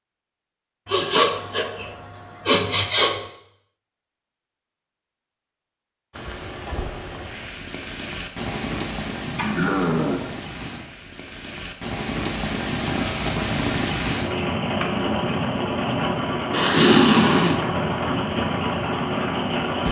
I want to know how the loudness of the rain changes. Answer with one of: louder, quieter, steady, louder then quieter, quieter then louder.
louder.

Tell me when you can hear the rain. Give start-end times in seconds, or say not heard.
6.2-19.8.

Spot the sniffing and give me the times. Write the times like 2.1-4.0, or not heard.
0.9-3.1, 9.2-10.3, 16.5-17.6.